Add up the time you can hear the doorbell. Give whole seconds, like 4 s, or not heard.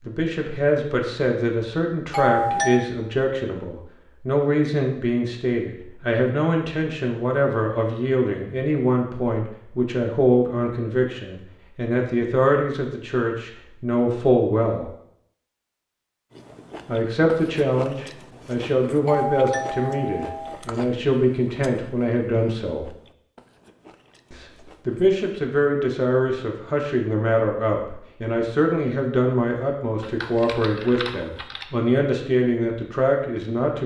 2 s.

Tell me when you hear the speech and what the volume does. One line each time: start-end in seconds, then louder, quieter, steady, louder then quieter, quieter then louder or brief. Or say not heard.
0.0-14.9 steady
16.9-22.9 steady
24.3-33.8 steady.